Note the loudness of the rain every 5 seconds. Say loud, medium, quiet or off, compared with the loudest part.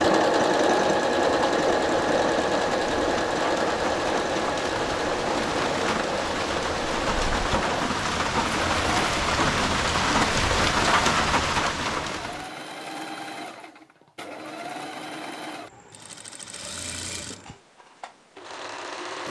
medium, loud, loud, off.